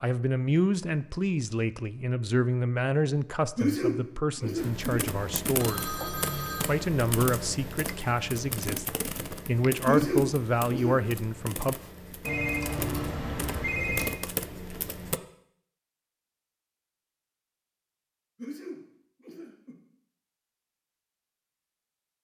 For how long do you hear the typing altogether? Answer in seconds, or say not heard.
11 s.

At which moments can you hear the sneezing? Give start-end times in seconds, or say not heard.
3.5-5.1, 9.8-11.0, 18.4-19.8.